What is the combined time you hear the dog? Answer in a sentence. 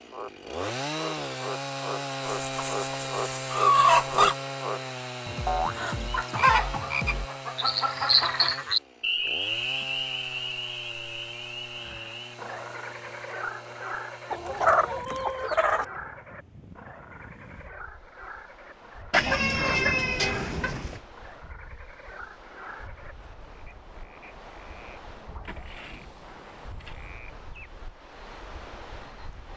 The dog can't be heard in this clip.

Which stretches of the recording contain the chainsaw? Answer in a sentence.
You can hear the chainsaw from 0.0 to 15.1 s.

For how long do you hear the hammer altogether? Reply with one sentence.
The hammer can't be heard in this clip.